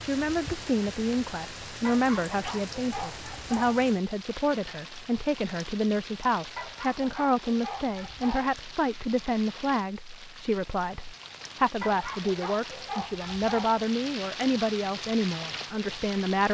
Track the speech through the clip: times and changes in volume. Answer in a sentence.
You can hear the speech from 0.0 to 16.5 s, at a steady volume.